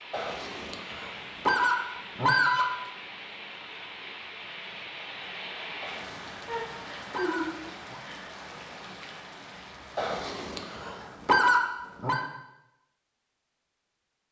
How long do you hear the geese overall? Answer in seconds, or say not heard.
7 s.